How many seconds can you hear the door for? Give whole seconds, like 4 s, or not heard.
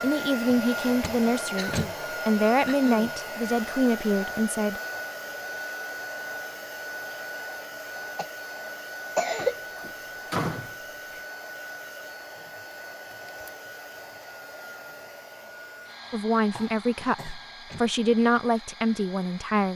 4 s.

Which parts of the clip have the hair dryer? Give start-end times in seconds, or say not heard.
0.0-19.7.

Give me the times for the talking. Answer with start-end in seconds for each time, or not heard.
0.0-4.8, 16.1-19.7.